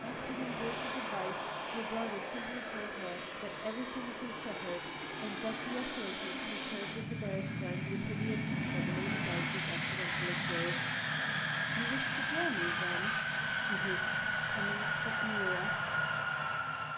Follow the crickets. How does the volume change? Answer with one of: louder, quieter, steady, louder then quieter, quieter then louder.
quieter.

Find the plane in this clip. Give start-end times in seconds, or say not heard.
0.0-16.9.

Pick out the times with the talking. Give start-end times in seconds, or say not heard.
0.1-10.8, 11.7-15.8.